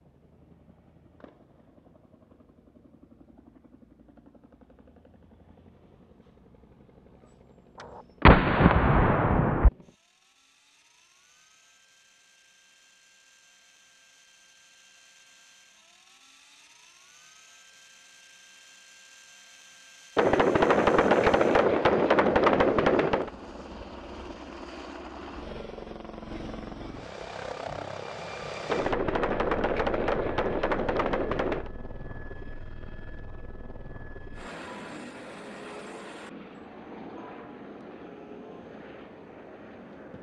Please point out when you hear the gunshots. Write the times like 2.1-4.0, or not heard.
7.8-9.7, 20.1-23.3, 28.6-31.7.